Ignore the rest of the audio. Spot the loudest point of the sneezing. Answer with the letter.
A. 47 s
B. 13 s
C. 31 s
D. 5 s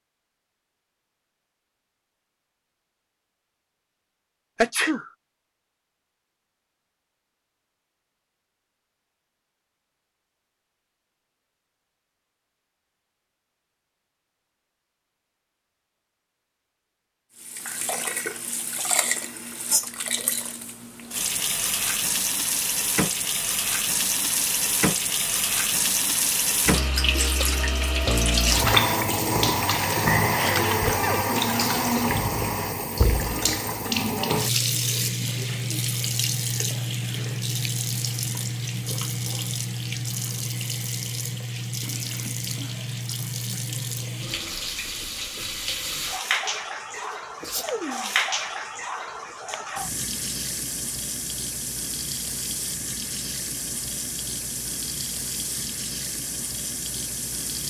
D.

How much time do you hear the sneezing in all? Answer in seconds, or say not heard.
3 s.